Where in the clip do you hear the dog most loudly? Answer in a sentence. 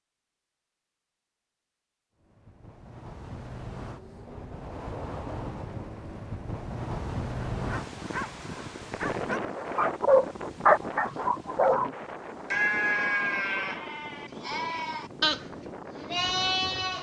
The volume of the dog peaks at 11 seconds.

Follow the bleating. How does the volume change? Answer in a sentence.
The loudness of the bleating goes down, then up.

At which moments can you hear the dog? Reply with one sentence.
You can hear the dog from 7.7 to 11.9 s.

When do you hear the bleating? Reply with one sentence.
The bleating can be heard from 12.5 to 16.9 s.